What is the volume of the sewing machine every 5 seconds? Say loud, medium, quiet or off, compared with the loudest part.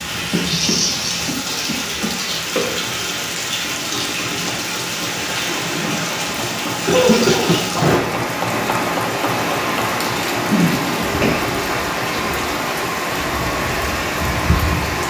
medium, loud, loud.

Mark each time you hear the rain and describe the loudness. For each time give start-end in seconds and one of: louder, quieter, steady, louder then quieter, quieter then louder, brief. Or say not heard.
0.0-15.0 steady.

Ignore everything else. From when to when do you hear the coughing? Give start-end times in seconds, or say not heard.
0.3-2.6, 6.8-7.5, 10.5-11.4.